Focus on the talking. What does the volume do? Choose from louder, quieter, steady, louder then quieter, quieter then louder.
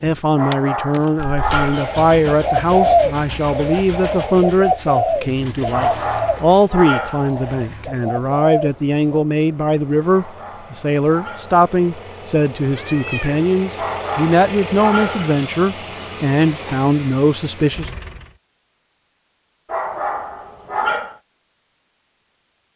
steady.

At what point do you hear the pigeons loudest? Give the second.
3 s.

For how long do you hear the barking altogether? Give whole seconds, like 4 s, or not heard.
8 s.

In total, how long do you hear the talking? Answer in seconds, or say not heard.
18 s.